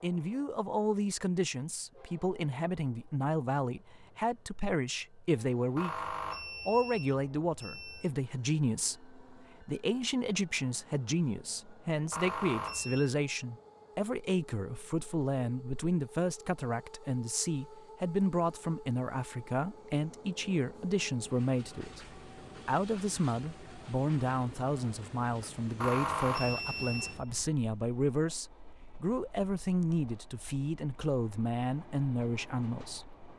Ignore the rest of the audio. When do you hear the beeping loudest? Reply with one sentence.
The loudest moment of the beeping is at 26 seconds.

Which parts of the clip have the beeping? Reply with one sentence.
You can hear the beeping from 5.8 to 8.1 s, from 12.1 to 13.1 s and from 25.8 to 27.5 s.